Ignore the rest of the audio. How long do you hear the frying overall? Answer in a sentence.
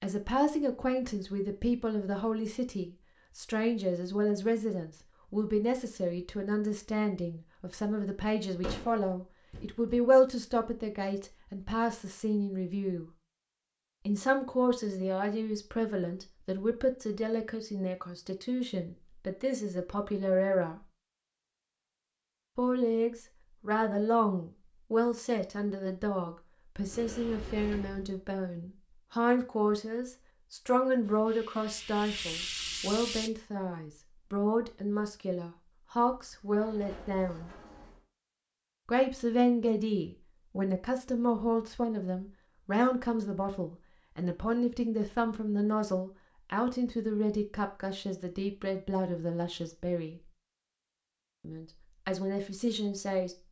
The frying can be heard for 2 seconds in total.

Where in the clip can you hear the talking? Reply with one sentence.
You can hear the talking from 0.0 to 13.1 s, from 14.1 to 20.8 s, from 22.6 to 37.5 s, from 38.9 to 50.2 s and from 51.4 to 53.4 s.